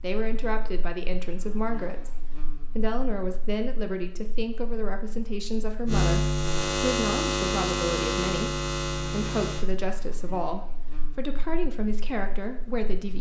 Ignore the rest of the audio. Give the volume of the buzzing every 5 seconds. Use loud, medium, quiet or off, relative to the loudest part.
quiet, loud, quiet.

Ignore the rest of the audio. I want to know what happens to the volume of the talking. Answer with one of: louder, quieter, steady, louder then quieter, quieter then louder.
steady.